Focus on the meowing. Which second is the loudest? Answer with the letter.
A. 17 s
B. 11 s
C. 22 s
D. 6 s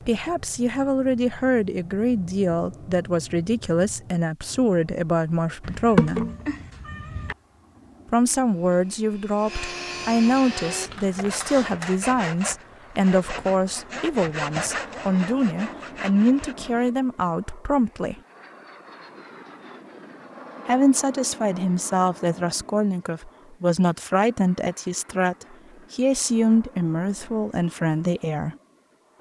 D.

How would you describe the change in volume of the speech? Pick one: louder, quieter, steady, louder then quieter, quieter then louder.
steady.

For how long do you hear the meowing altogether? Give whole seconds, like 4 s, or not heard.
2 s.